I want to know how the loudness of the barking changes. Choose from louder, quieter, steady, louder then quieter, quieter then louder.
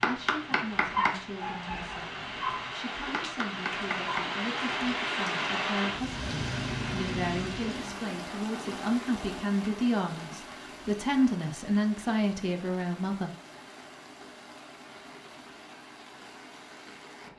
quieter.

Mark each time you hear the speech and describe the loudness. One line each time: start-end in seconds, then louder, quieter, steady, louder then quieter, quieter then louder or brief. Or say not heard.
0.1-13.3 louder.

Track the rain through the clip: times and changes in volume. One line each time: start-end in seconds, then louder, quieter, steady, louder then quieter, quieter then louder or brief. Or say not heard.
0.0-17.3 louder then quieter.